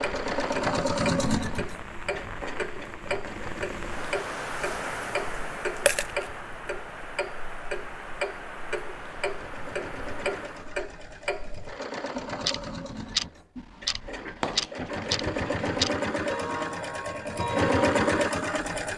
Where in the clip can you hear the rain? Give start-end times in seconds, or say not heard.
0.0-10.7.